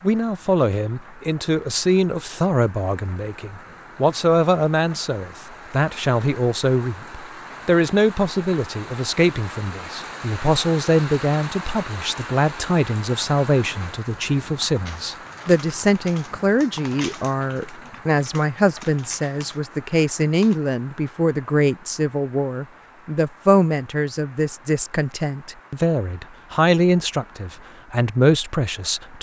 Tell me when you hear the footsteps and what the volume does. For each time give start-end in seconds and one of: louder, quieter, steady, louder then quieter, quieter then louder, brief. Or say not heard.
not heard.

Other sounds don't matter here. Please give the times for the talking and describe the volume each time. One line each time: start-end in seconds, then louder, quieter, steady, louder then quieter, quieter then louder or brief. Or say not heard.
0.0-29.1 steady.